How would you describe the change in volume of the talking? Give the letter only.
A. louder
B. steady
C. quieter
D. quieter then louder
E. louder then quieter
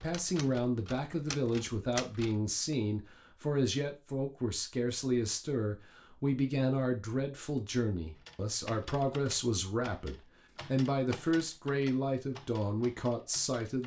B.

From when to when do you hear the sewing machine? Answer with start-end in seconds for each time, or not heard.
not heard.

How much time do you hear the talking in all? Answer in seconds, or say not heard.
14 s.